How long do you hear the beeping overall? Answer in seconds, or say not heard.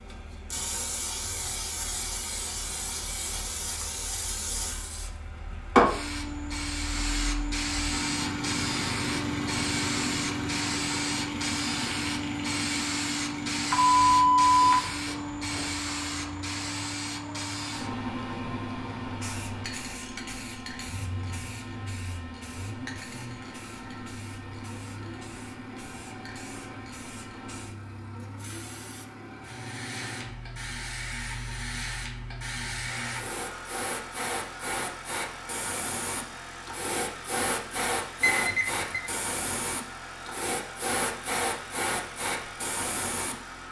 3 s.